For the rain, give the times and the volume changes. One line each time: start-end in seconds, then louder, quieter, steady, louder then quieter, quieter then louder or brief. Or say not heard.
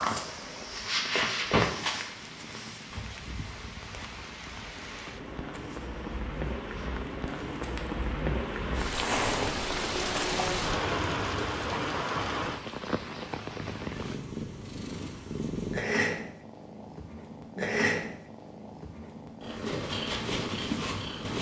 0.0-14.2 louder.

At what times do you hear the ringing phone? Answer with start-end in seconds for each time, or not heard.
not heard.